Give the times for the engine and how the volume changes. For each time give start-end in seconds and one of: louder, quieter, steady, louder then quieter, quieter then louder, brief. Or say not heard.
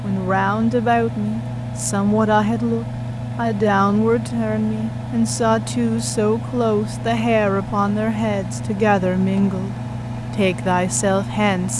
0.0-11.7 steady.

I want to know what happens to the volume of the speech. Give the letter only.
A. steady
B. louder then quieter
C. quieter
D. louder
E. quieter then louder
A.